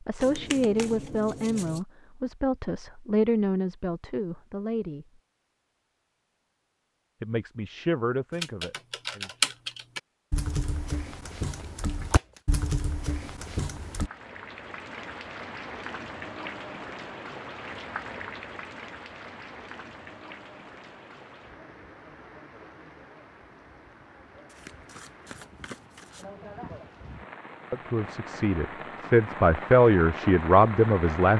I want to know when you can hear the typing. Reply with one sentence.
The typing can be heard from 8.3 to 14.1 s.